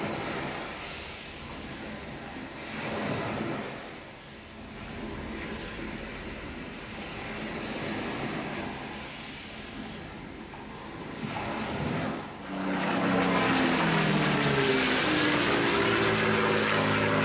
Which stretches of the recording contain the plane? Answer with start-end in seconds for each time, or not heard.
12.3-17.2.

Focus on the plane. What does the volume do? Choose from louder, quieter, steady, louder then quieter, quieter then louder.
steady.